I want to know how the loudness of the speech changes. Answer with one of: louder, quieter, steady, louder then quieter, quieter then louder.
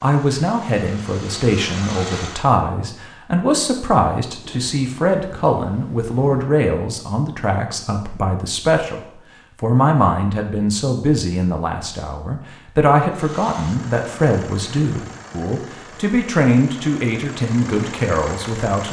steady.